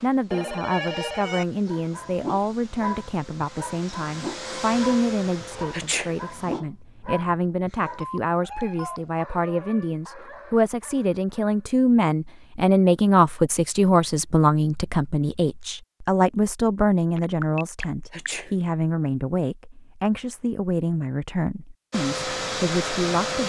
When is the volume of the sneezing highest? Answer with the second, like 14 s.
6 s.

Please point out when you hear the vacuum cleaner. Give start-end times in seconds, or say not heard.
0.0-6.7, 21.9-23.4.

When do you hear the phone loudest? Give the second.
1 s.